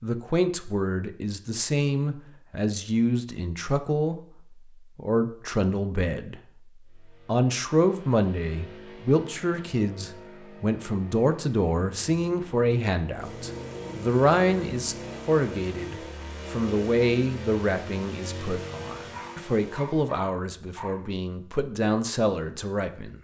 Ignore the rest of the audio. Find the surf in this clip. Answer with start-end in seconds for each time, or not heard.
not heard.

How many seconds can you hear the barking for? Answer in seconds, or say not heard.
2 s.